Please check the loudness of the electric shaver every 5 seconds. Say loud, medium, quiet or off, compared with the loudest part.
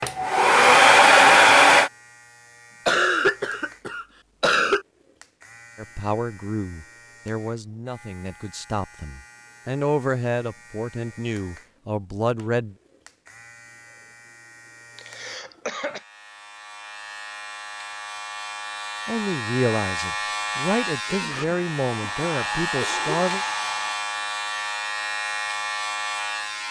quiet, quiet, quiet, medium, loud, loud.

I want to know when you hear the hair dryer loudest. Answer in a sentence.
The loudest moment of the hair dryer is at 1 second.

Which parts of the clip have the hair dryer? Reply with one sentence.
The hair dryer can be heard from 0.0 to 1.9 s and from 21.2 to 24.0 s.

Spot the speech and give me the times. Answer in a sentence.
The speech can be heard from 5.8 to 12.8 s and from 19.1 to 23.4 s.